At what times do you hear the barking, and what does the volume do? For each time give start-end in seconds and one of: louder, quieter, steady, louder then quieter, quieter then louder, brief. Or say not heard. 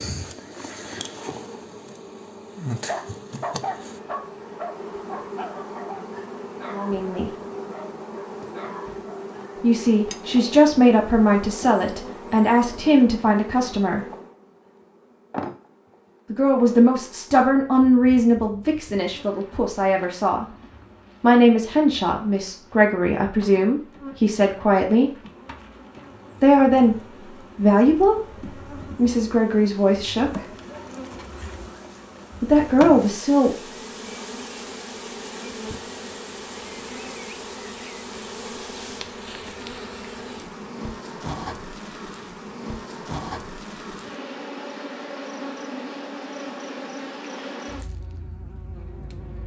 2.8-9.2 quieter.